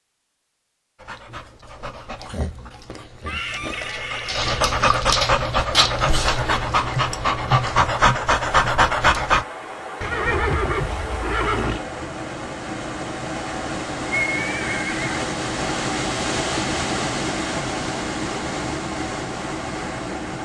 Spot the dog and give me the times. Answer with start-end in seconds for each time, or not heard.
1.0-9.4.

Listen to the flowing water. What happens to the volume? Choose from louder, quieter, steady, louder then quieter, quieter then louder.
louder.